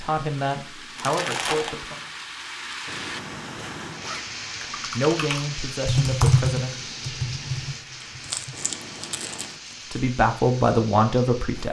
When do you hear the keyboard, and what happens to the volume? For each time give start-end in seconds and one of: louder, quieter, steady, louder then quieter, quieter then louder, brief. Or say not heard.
4.6-8.7 louder then quieter.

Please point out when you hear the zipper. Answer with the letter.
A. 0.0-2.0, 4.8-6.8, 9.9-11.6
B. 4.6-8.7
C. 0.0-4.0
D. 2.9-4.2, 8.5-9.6
D.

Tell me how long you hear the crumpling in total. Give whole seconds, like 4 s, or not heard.
3 s.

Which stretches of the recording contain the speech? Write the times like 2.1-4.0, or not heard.
0.0-2.0, 4.8-6.8, 9.9-11.6.